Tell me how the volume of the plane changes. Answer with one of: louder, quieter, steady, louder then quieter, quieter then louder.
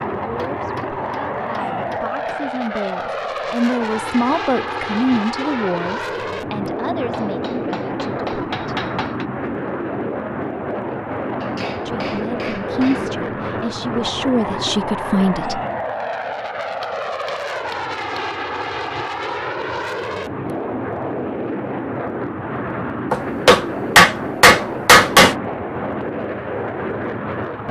steady.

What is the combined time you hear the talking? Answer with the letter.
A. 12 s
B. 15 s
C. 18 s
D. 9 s
A.